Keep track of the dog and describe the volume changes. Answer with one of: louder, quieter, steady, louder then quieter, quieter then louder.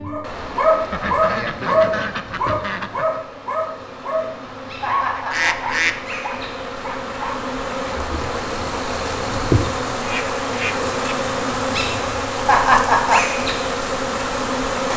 quieter.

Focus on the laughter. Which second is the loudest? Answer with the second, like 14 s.
13 s.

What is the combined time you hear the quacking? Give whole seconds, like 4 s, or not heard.
4 s.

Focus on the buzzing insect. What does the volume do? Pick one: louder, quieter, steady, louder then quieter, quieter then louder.
louder.